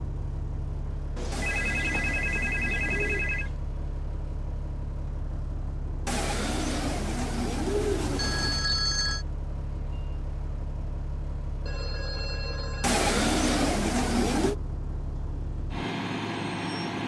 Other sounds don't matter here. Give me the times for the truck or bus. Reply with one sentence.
You can hear the truck or bus from 0.0 to 17.0 s.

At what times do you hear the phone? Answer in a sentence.
You can hear the phone from 1.1 to 3.5 s, from 8.2 to 9.2 s and from 11.7 to 13.0 s.